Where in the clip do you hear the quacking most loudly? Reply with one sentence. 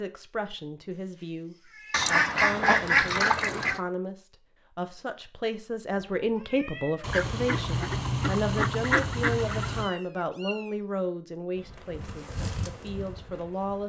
The volume of the quacking peaks at 3 seconds.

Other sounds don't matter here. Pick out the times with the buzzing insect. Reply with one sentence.
The buzzing insect can be heard from 11.6 to 13.8 s.